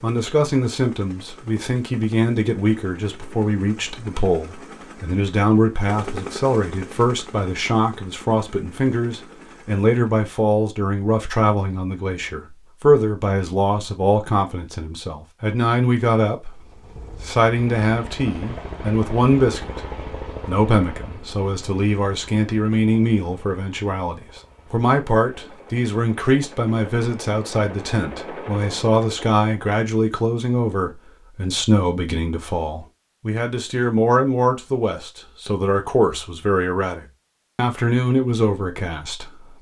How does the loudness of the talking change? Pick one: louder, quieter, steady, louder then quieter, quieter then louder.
steady.